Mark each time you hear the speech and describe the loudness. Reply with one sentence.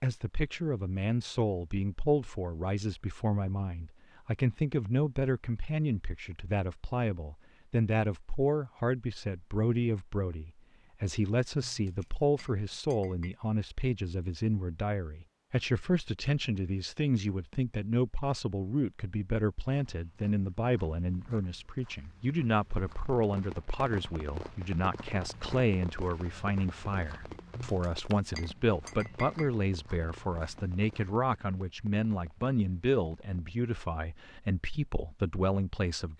The speech can be heard from 0.0 to 36.1 s, at a steady volume.